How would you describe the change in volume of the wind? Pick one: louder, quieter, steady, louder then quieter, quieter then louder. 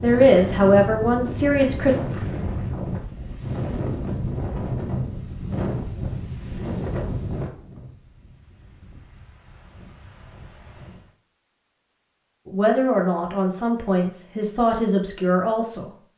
quieter.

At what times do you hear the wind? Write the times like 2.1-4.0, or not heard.
0.0-11.2.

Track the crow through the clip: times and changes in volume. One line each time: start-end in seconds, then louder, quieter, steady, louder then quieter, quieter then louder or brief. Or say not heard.
not heard.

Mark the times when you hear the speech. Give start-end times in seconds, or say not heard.
0.0-1.9, 12.4-15.9.